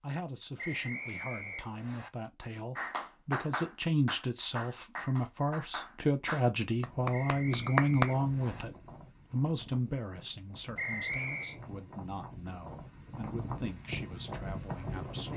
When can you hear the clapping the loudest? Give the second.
8 s.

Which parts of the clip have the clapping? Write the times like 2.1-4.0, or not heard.
2.8-8.1.